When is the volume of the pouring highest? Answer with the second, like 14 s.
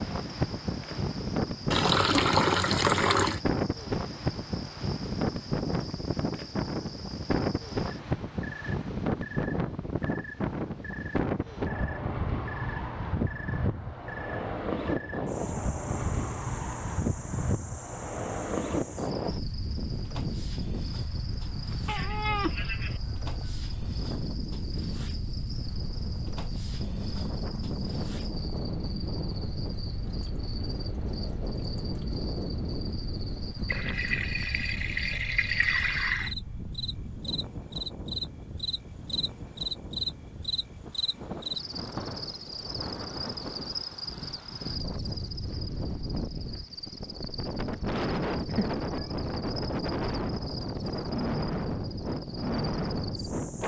2 s.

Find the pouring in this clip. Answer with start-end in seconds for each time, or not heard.
1.7-3.4, 33.6-36.4.